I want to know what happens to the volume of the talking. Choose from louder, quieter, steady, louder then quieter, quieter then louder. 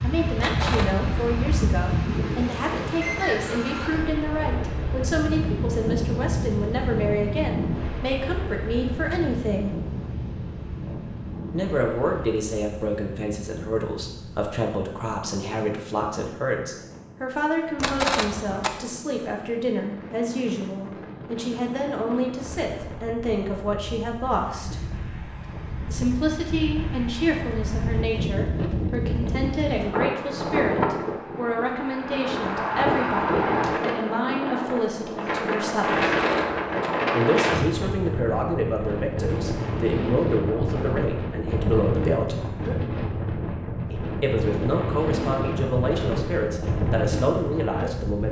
steady.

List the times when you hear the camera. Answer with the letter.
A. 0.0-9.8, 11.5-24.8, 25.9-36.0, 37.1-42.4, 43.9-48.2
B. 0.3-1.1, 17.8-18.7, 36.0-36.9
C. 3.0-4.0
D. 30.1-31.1
B.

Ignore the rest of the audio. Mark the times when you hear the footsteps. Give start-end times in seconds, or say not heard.
not heard.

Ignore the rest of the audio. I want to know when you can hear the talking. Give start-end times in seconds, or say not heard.
0.0-9.8, 11.5-24.8, 25.9-36.0, 37.1-42.4, 43.9-48.2.